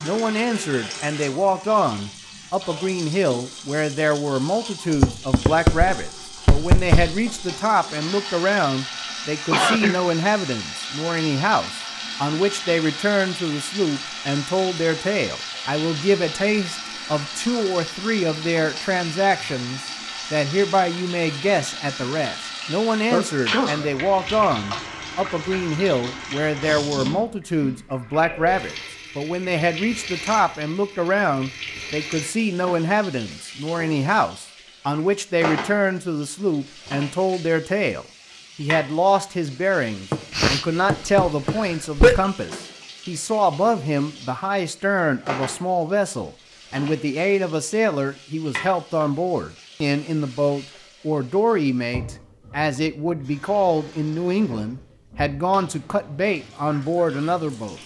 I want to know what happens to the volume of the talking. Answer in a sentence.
The loudness of the talking stays about the same.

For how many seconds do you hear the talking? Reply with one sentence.
You can hear the talking for 58 seconds altogether.